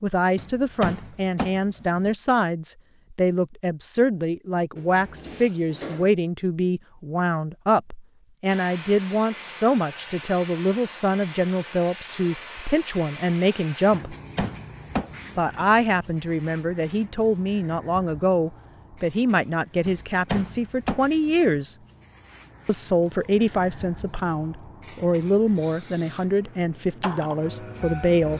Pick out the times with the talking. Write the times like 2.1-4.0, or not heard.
0.0-14.2, 15.3-21.8, 22.6-28.3.